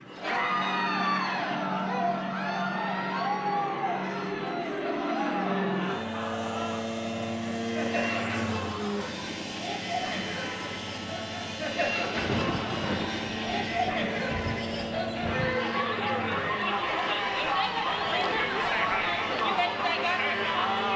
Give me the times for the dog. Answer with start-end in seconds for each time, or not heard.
not heard.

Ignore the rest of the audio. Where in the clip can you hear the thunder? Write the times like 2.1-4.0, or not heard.
12.2-15.6.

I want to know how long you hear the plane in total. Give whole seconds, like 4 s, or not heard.
21 s.